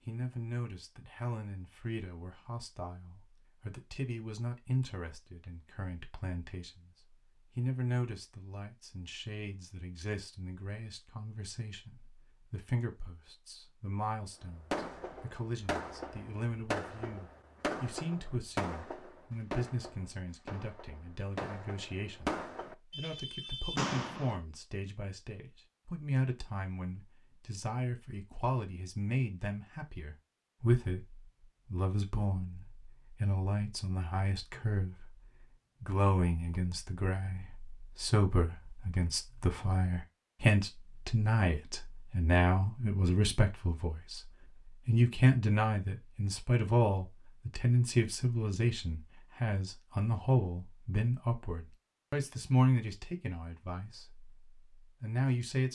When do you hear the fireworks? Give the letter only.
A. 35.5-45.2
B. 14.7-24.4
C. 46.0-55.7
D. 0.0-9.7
B.